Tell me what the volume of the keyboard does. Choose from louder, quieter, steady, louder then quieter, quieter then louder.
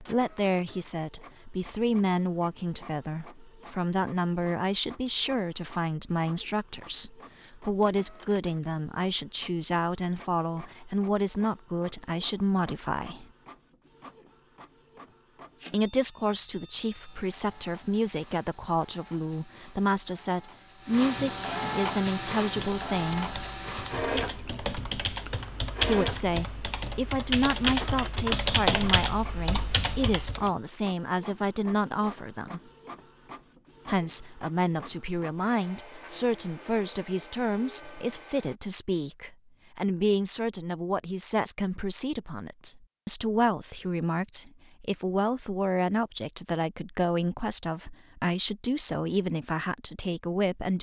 louder.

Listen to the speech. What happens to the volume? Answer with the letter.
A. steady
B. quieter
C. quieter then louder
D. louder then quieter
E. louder
A.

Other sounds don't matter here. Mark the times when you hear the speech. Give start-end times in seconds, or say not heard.
0.0-13.2, 15.7-23.4, 25.8-32.6, 33.9-50.7.